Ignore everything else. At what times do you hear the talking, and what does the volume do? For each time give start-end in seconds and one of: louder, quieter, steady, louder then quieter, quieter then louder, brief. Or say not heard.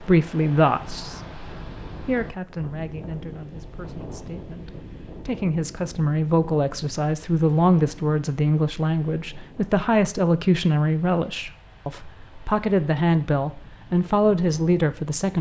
0.0-1.3 brief
2.0-15.3 louder.